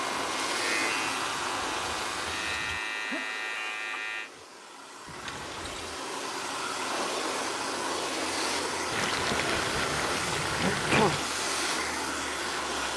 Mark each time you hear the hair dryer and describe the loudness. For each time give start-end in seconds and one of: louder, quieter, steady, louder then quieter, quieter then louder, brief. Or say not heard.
0.0-12.9 quieter then louder.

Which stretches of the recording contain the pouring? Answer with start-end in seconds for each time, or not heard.
1.1-2.8, 5.0-6.0, 8.9-11.2.